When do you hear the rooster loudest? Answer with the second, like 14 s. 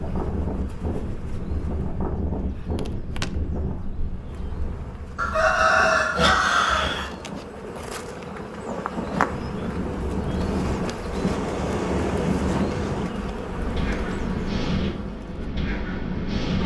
6 s.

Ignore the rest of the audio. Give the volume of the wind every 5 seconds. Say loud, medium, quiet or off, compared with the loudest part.
medium, medium, loud, loud.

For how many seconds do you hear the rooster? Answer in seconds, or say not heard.
2 s.